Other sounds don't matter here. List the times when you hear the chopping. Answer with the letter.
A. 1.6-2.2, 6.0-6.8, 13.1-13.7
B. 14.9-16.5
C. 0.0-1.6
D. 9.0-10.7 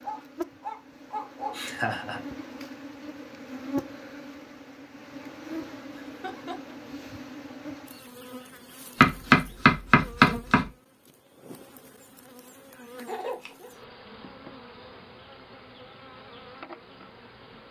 D.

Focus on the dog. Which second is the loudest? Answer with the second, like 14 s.
1 s.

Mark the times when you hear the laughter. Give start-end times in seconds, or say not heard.
1.6-2.2, 6.0-6.8, 13.1-13.7.